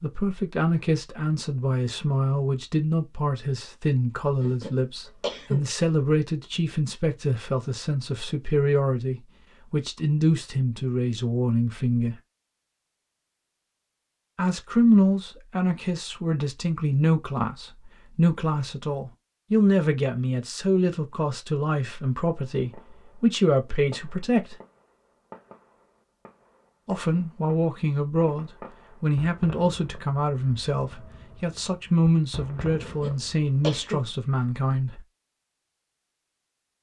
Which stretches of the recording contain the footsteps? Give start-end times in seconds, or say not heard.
not heard.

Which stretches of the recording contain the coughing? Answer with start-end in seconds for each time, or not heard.
4.4-5.7, 32.8-34.1.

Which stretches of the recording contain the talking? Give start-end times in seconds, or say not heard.
0.0-12.2, 14.3-24.6, 26.9-35.0.